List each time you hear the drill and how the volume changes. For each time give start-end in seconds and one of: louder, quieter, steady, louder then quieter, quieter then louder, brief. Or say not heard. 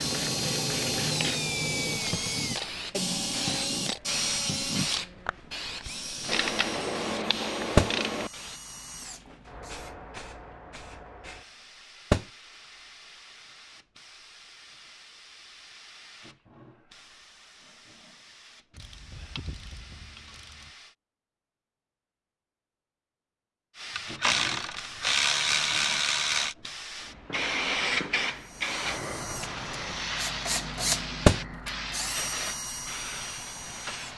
0.0-9.9 quieter
28.4-34.1 louder then quieter.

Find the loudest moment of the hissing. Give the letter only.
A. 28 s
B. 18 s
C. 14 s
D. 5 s
A.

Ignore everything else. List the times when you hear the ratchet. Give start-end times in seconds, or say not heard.
6.2-8.3, 18.8-20.7, 23.9-26.6.